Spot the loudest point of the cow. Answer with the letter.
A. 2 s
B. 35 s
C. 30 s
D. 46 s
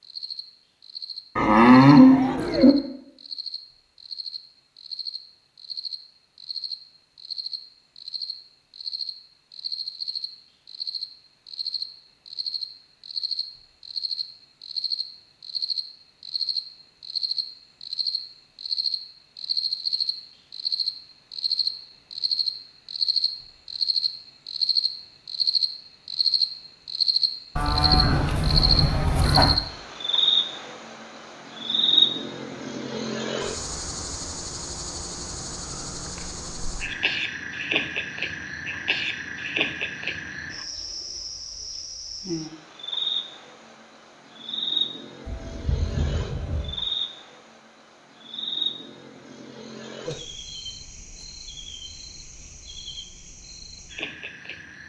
A.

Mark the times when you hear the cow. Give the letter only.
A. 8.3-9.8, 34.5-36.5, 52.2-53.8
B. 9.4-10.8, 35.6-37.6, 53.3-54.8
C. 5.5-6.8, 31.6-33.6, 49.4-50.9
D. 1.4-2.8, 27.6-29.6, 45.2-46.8
D.